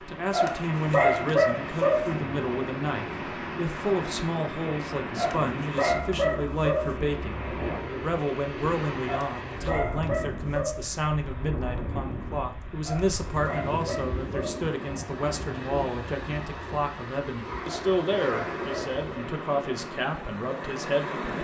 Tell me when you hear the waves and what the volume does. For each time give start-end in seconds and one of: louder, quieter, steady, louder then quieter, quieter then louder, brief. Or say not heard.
0.0-21.3 steady.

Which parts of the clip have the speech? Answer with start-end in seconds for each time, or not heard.
0.0-21.3.